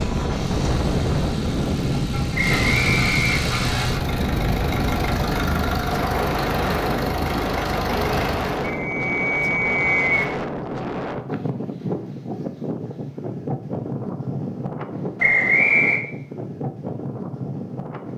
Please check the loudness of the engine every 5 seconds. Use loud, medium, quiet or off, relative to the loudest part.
loud, loud, off, off.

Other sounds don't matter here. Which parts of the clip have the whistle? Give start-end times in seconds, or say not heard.
2.4-3.9, 8.6-10.2, 15.2-16.1.